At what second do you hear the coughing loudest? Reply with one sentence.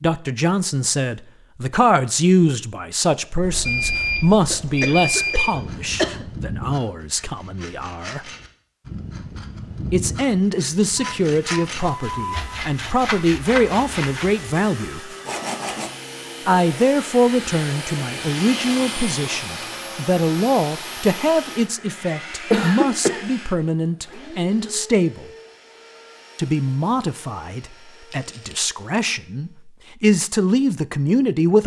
The volume of the coughing peaks at 23 seconds.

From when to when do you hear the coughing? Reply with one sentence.
You can hear the coughing from 4.5 to 6.2 s and from 22.5 to 23.2 s.